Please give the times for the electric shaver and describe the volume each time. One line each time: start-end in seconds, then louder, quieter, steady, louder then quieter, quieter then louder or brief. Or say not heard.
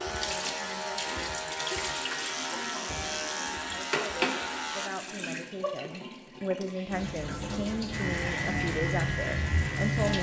0.0-4.9 steady
7.9-10.1 brief.